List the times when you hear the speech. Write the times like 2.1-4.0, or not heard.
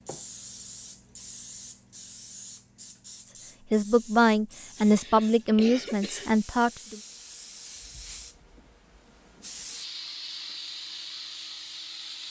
3.7-7.0.